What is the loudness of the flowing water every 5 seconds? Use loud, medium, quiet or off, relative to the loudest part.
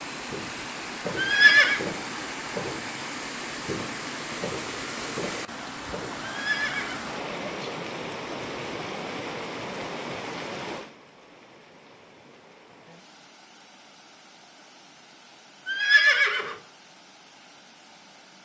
loud, loud, medium, quiet.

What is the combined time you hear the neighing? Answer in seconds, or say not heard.
3 s.